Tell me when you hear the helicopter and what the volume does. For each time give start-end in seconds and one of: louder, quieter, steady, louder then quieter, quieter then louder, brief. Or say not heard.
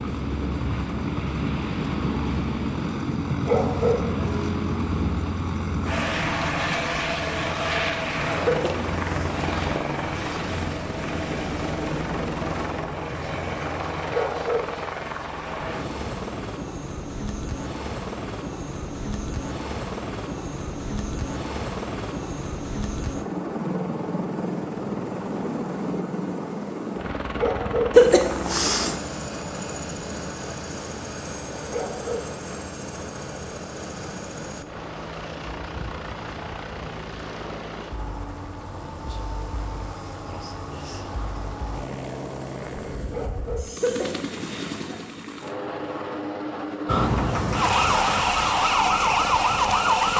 0.0-50.1 quieter.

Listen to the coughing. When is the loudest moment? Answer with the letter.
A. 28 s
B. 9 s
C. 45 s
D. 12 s
A.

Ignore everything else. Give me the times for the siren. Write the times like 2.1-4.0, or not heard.
46.9-50.1.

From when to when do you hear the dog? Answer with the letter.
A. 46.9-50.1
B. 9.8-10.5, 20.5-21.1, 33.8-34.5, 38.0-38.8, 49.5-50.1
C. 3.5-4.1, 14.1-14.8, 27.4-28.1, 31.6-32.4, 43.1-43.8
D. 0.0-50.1
C.